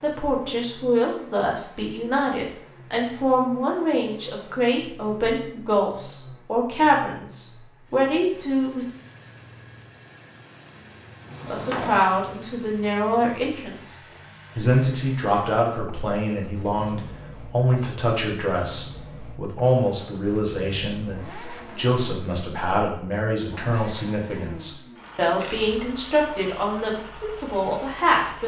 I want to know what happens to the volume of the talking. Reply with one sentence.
The loudness of the talking stays about the same.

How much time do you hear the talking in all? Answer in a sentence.
You can hear the talking for 26 seconds altogether.